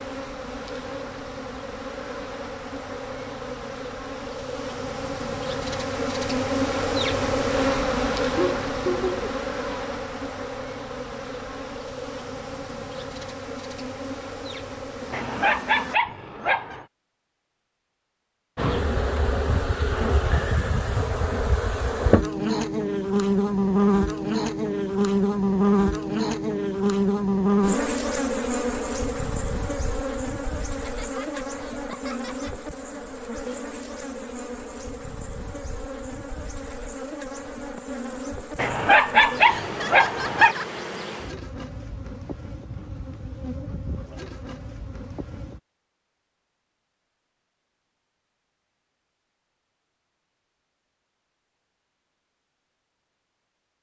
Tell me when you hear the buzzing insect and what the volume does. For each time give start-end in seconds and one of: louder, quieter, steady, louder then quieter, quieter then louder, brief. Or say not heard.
0.0-15.9 louder then quieter
18.6-45.6 quieter.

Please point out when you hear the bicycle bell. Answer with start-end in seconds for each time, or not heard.
not heard.